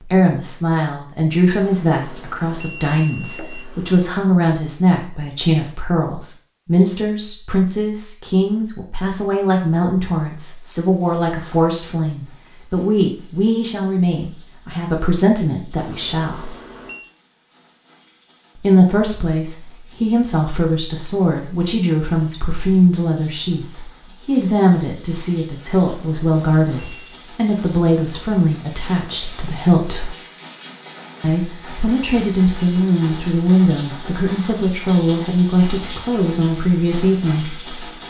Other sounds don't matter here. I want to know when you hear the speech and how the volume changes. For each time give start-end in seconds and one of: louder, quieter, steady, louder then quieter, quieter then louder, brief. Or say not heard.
0.1-16.5 steady
18.6-30.1 steady
31.2-37.9 steady.